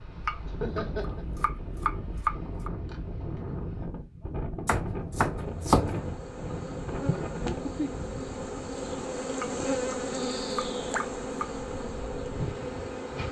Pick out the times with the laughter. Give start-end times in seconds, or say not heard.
0.5-1.2.